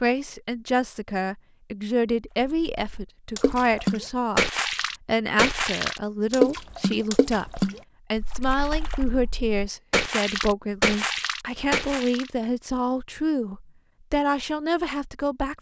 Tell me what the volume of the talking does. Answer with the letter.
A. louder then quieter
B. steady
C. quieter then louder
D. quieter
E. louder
B.